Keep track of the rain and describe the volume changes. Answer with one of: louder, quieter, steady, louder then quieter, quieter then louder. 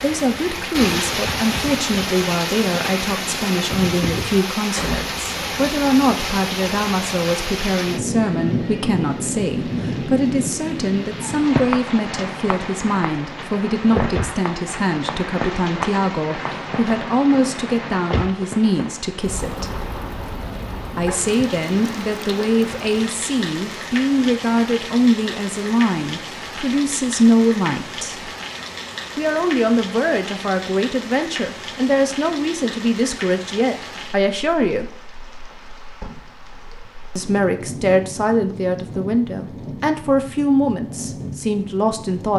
quieter.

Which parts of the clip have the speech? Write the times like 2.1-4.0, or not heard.
0.0-19.8, 20.9-28.3, 29.1-34.9, 37.1-42.3.